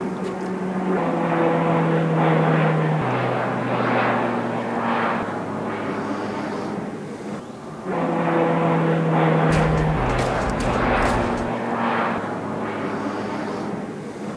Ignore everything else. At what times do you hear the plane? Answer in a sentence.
You can hear the plane from 0.0 to 14.3 s.